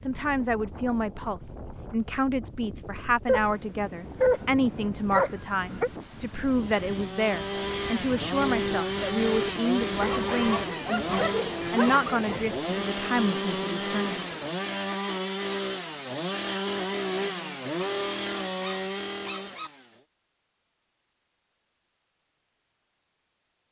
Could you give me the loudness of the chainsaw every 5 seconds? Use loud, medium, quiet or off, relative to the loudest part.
off, loud, loud, loud, off.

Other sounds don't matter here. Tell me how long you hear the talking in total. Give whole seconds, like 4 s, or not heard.
14 s.